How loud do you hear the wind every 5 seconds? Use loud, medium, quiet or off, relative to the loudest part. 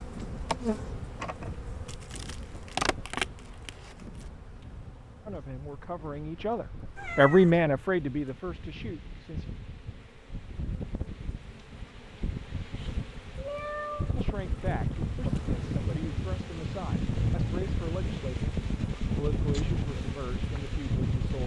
quiet, quiet, medium, loud, loud.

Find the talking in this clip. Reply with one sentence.
You can hear the talking from 5.2 to 9.4 s and from 14.2 to 21.4 s.